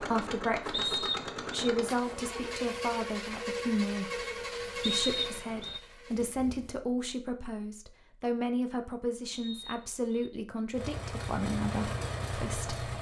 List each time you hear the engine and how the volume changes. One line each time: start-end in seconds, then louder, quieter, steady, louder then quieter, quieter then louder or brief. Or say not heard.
0.0-6.8 quieter
10.7-12.9 brief.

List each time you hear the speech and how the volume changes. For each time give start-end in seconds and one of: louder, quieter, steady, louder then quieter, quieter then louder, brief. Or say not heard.
0.0-12.8 steady.